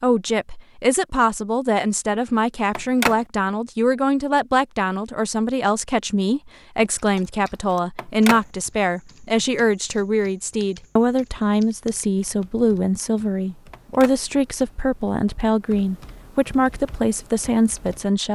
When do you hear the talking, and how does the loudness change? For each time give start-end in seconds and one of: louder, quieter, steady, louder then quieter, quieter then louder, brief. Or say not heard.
0.0-18.3 steady.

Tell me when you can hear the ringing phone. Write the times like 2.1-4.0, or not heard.
2.8-3.2, 8.0-8.4, 13.7-14.2.